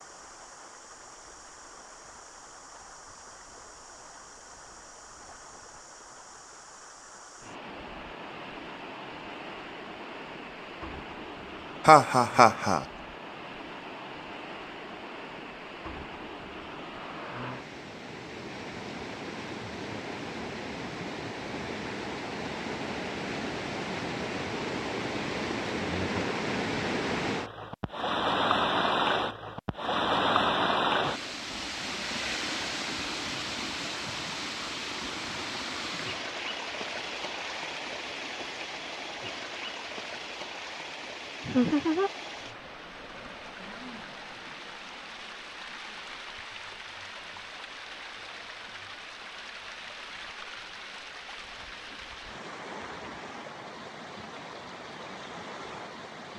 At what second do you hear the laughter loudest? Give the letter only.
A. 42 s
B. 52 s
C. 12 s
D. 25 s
C.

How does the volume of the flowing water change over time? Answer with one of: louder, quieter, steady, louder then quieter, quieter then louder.
louder then quieter.